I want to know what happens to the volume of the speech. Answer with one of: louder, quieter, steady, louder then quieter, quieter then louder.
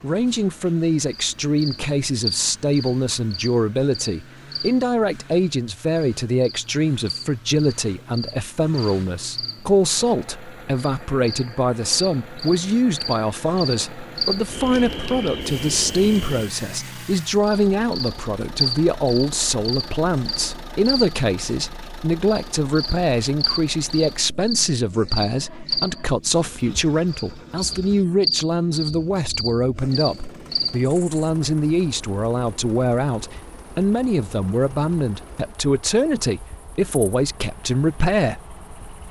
steady.